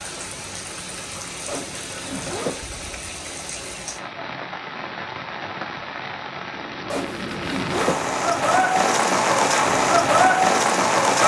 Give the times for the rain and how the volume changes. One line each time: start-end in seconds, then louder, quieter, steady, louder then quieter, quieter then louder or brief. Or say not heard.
0.0-11.2 louder.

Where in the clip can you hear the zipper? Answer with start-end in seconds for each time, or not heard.
1.4-2.6, 6.9-8.1.